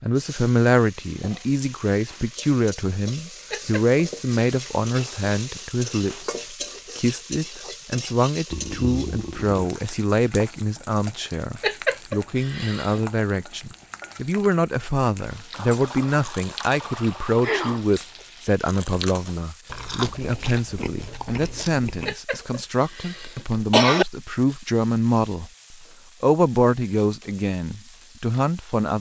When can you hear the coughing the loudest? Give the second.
24 s.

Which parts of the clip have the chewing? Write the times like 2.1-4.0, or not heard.
15.3-22.1.